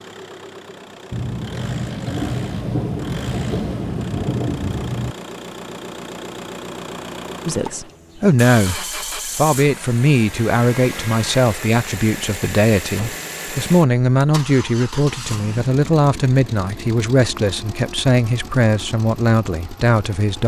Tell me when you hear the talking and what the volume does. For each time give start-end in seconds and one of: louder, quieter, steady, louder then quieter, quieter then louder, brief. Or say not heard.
7.5-20.4 steady.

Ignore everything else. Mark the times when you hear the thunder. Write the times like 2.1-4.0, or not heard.
1.1-5.2.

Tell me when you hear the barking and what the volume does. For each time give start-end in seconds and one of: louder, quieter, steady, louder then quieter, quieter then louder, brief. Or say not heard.
not heard.